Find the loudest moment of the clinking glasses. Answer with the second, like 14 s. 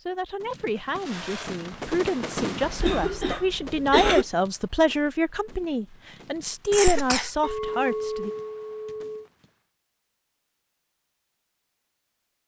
8 s.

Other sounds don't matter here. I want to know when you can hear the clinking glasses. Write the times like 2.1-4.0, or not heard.
7.4-9.2.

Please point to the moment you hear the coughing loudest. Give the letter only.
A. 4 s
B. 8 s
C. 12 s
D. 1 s
A.